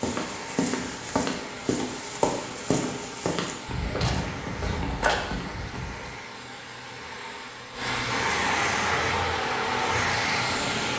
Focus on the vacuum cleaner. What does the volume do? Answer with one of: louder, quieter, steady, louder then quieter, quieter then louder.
louder.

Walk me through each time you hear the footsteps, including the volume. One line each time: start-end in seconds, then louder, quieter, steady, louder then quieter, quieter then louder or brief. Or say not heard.
0.0-6.2 steady.